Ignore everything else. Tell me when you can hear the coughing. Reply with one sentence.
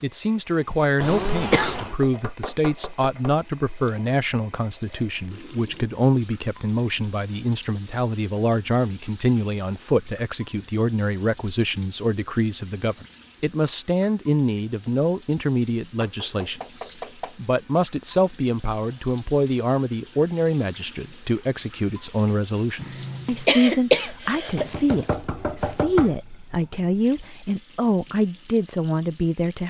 You can hear the coughing from 1.0 to 1.9 s and from 22.8 to 24.6 s.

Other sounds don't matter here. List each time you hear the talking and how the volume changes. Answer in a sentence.
You can hear the talking from 0.0 to 29.6 s, at a steady volume.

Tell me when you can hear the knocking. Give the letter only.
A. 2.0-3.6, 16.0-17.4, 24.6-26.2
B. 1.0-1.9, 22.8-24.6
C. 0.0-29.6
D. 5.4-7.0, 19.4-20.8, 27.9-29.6
A.